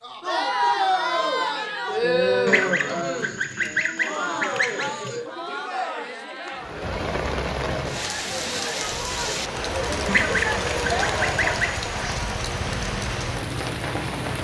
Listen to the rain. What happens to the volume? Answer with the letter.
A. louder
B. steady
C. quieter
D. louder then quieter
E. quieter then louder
B.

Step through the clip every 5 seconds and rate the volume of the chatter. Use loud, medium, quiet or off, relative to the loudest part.
loud, medium, loud.